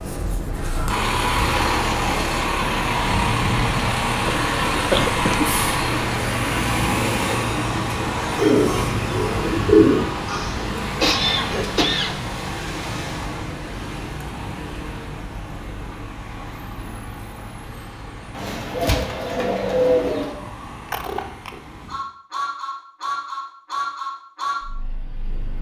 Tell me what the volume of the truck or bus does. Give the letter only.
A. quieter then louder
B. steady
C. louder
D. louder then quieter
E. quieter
A.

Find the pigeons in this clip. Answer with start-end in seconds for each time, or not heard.
8.3-10.4, 18.4-20.3.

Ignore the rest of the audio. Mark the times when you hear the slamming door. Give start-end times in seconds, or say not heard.
not heard.